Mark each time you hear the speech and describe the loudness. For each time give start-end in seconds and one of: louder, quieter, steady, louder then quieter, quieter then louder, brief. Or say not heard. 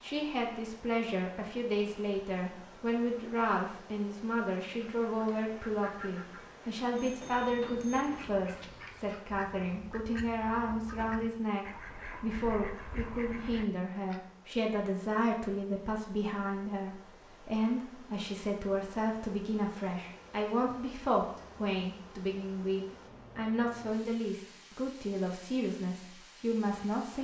0.0-27.1 steady.